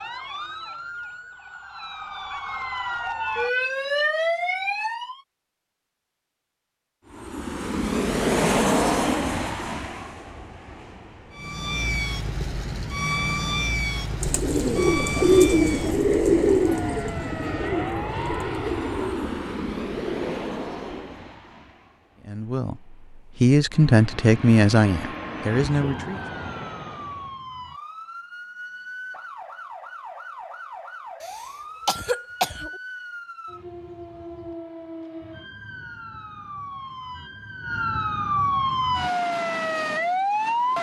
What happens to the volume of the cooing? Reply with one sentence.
The volume of the cooing goes down.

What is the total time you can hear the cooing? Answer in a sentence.
You can hear the cooing for 7 seconds altogether.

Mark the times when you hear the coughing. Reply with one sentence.
You can hear the coughing from 31.2 to 32.8 s.